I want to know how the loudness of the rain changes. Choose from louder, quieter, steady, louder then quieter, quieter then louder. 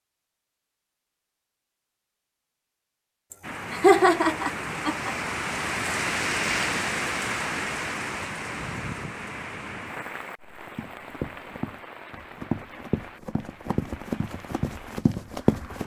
quieter.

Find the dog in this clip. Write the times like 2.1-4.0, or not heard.
not heard.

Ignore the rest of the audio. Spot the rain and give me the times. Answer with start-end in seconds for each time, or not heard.
3.4-15.8.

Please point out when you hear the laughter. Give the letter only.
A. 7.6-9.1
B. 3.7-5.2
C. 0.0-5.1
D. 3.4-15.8
B.